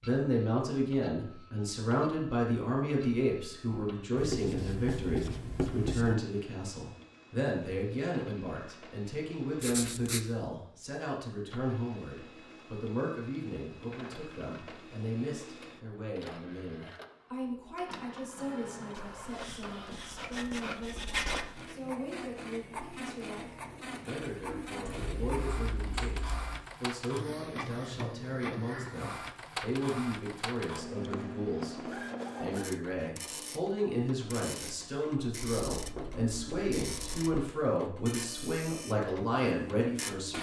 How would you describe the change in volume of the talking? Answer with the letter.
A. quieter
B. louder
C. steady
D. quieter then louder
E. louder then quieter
D.